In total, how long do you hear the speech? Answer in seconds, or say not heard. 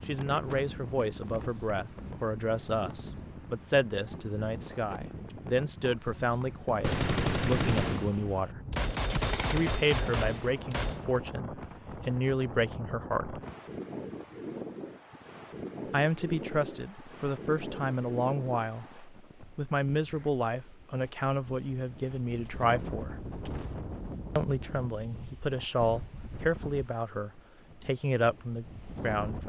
25 s.